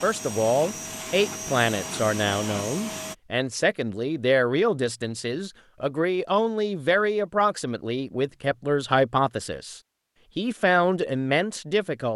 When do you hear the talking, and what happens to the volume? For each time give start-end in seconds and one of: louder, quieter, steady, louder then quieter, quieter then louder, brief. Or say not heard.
0.0-12.1 steady.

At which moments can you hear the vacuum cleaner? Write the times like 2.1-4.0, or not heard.
0.0-3.1.